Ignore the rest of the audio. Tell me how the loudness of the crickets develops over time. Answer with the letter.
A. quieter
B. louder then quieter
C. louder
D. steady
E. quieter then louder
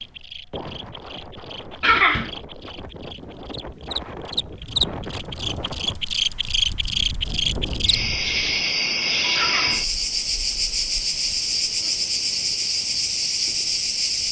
C.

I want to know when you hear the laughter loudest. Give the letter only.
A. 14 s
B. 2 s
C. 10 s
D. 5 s
B.